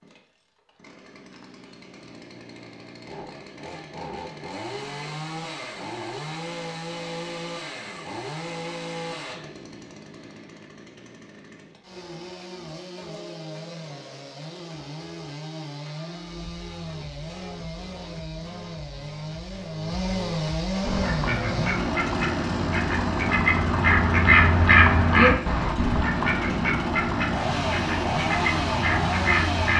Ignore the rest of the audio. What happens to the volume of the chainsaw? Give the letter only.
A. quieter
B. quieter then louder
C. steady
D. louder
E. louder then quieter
D.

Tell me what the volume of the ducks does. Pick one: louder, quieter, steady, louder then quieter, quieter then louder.
louder then quieter.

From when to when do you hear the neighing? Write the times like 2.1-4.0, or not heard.
not heard.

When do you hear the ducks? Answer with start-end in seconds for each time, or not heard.
20.8-29.7.